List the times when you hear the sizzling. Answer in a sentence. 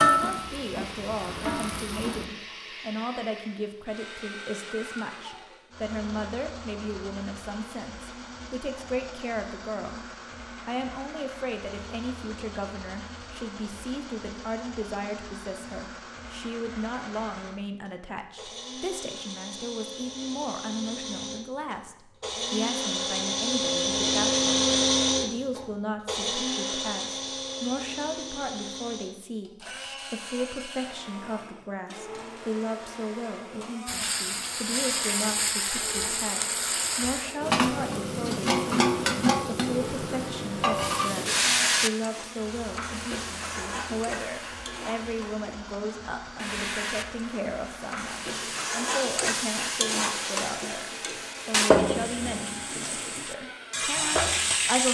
The sizzling can be heard from 0.0 to 2.2 s and from 33.9 to 54.8 s.